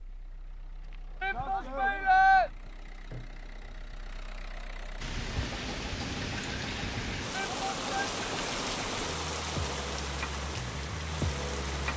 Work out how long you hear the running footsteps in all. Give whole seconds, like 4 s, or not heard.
not heard.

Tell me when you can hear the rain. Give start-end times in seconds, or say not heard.
5.0-11.9.